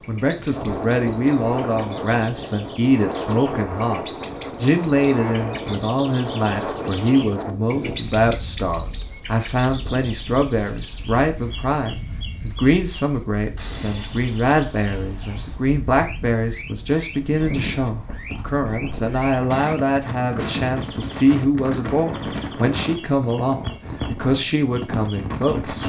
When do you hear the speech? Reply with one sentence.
You can hear the speech from 0.1 to 4.0 s and from 4.6 to 25.8 s.